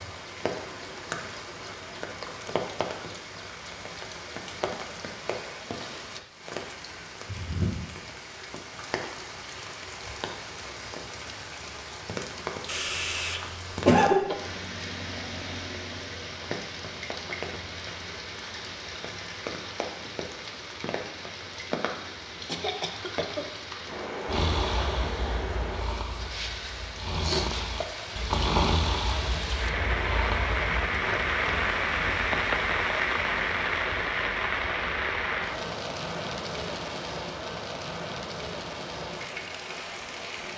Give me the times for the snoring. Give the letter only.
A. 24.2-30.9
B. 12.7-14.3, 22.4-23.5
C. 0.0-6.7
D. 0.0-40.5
A.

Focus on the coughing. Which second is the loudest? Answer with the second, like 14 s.
14 s.